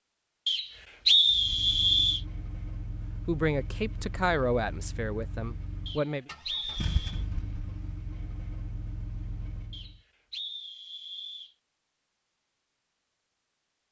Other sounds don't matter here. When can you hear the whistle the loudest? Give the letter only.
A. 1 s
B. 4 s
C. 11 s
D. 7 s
A.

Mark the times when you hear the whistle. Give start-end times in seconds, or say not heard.
0.5-2.2, 5.8-7.2, 9.7-11.5.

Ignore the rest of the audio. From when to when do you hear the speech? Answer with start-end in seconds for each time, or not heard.
3.2-6.2.